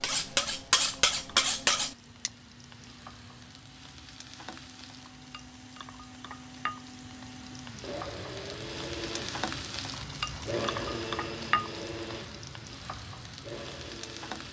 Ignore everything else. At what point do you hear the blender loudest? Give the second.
11 s.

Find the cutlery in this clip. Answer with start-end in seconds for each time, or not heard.
0.0-2.3.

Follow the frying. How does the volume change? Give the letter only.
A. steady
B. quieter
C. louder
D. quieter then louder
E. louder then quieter
C.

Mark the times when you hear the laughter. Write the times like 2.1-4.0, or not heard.
not heard.